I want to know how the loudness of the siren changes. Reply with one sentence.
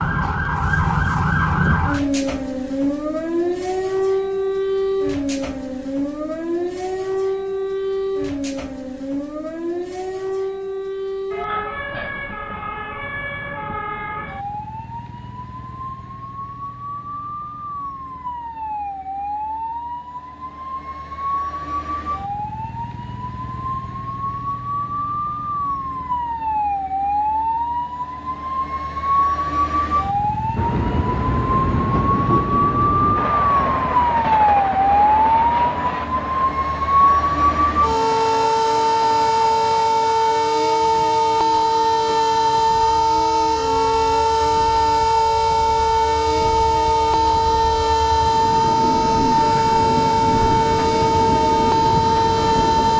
The volume of the siren goes down, then up.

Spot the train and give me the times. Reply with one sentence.
The train can be heard from 30.6 to 52.9 s.